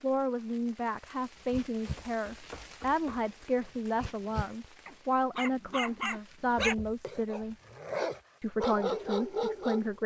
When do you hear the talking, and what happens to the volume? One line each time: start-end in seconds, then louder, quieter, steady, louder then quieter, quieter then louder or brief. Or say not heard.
0.0-7.5 steady
8.4-10.0 brief.